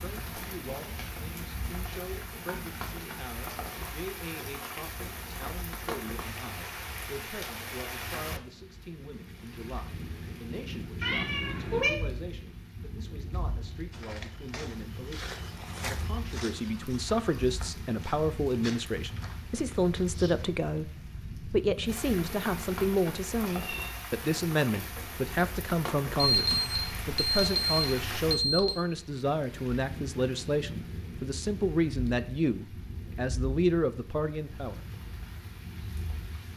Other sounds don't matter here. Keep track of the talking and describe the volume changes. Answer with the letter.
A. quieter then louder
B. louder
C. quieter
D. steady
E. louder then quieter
B.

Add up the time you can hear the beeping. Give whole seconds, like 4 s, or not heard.
3 s.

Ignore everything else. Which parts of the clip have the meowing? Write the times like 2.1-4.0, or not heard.
11.0-11.9, 23.4-24.0.